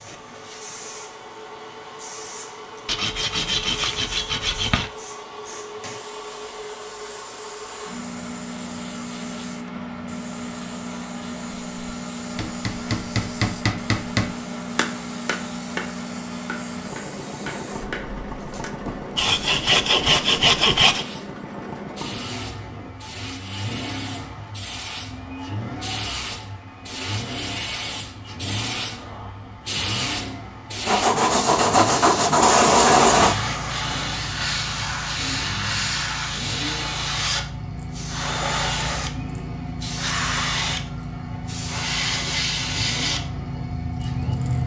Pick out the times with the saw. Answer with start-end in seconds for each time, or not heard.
2.9-4.9, 19.1-21.1, 30.9-33.4.